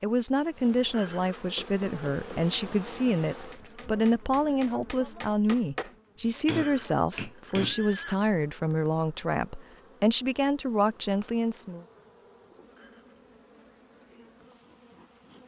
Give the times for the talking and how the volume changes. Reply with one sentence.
You can hear the talking from 0.0 to 11.8 s, at a steady volume.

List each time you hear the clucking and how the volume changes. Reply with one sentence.
You can't hear the clucking here.